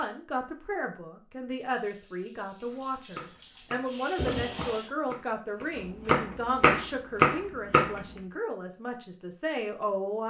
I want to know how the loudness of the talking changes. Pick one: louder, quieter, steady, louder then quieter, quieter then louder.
steady.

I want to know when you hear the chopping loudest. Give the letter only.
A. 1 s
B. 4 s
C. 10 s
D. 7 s
D.